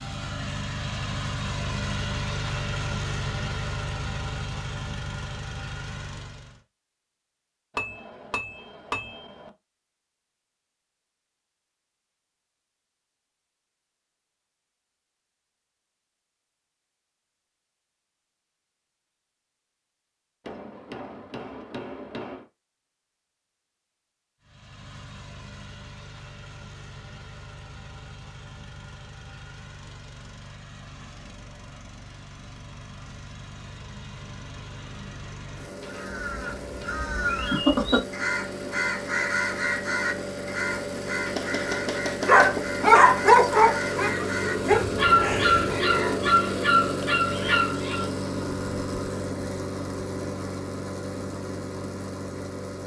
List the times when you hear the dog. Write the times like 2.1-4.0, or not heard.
42.2-48.0.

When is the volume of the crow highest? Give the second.
38 s.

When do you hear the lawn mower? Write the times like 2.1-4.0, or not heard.
0.0-6.6, 24.4-52.8.